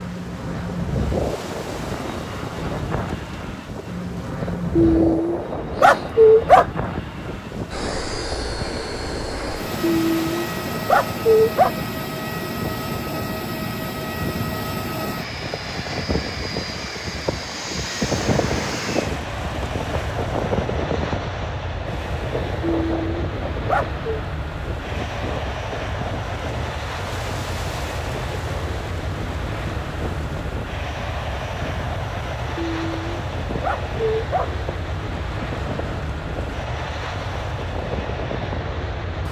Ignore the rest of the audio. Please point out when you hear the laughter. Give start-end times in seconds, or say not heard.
not heard.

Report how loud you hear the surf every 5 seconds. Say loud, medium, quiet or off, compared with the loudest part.
medium, medium, medium, loud, loud, medium, medium, medium.